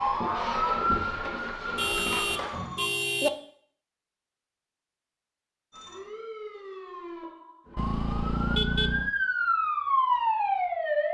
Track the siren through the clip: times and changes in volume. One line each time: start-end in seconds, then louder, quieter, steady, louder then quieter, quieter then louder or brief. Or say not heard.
0.0-2.9 brief
5.7-11.0 louder.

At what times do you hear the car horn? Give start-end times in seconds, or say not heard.
1.8-3.3, 7.8-9.1.